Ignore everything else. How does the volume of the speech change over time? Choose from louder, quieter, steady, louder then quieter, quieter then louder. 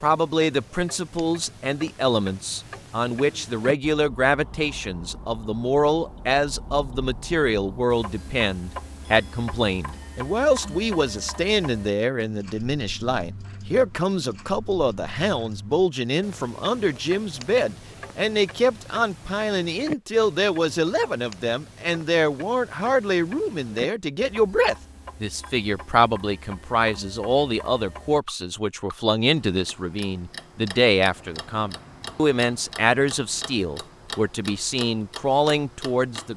steady.